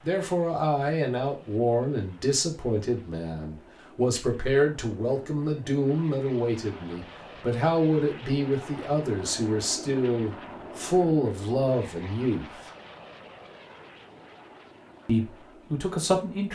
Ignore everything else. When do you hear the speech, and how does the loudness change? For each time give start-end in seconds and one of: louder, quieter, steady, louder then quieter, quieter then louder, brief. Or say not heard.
0.0-12.6 steady
15.1-16.4 brief.